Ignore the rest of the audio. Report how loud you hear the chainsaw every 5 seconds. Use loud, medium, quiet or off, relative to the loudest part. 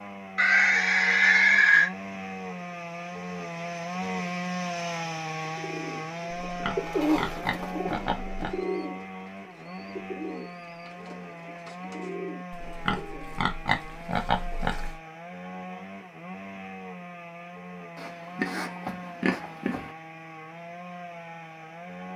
loud, loud, medium, medium, medium.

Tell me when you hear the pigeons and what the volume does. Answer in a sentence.
You can hear the pigeons from 5.4 to 13.3 s, getting quieter.